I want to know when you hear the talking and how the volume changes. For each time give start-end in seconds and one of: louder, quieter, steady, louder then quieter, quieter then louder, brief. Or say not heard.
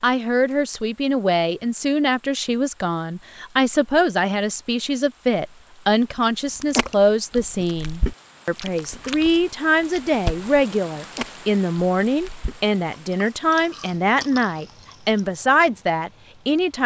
0.0-16.8 steady.